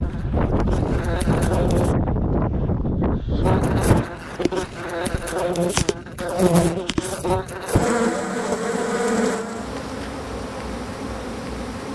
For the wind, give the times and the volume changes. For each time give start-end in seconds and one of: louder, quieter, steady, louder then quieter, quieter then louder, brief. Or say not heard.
0.0-11.8 quieter.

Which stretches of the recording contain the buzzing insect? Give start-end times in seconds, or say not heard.
0.0-1.9, 3.4-11.9.